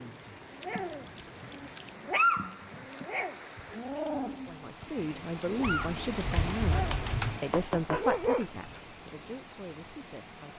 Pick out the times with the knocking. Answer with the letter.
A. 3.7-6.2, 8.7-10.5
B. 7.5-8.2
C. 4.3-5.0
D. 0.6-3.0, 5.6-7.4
B.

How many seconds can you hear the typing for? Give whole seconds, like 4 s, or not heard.
4 s.